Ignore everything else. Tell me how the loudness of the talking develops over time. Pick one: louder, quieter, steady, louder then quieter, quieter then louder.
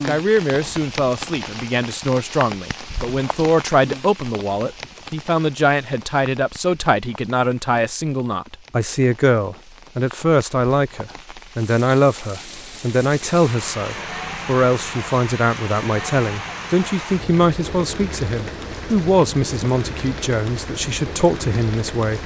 steady.